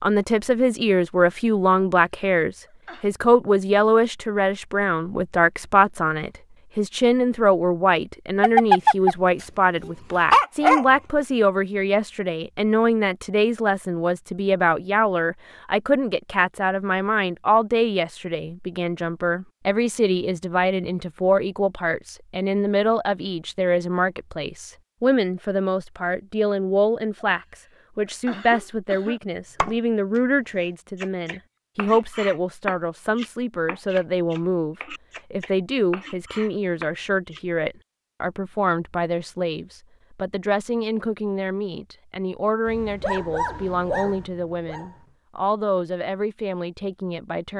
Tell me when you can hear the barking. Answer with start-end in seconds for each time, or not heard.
8.4-10.8, 42.6-44.9.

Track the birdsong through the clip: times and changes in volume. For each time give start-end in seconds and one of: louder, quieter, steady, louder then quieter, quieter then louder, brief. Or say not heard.
not heard.